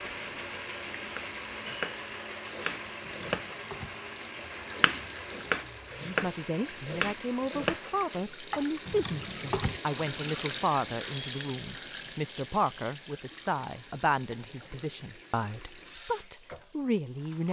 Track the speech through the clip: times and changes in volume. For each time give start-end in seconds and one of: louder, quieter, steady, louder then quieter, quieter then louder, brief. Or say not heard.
6.0-17.4 steady.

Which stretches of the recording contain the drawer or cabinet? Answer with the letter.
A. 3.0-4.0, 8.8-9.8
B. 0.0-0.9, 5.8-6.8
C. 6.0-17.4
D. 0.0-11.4
A.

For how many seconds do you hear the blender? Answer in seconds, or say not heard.
8 s.